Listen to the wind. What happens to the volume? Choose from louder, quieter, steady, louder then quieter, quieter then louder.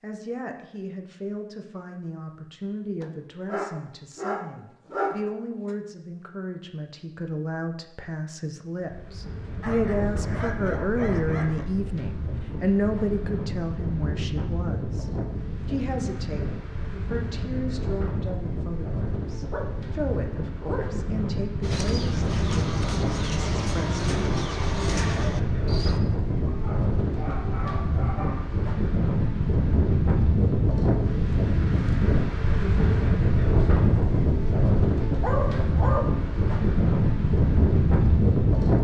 louder.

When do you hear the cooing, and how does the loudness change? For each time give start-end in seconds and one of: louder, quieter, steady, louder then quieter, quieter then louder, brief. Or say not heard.
21.6-26.0 steady.